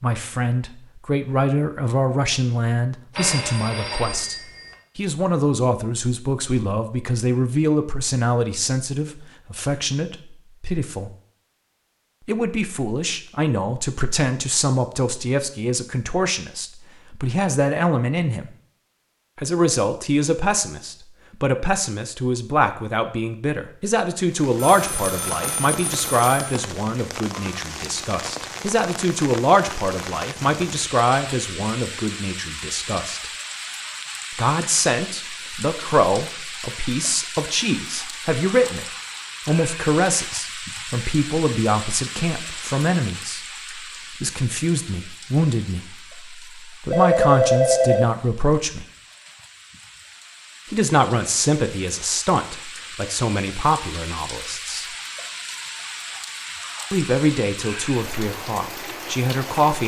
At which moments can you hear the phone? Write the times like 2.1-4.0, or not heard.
3.1-4.8, 24.6-26.4, 46.9-48.0.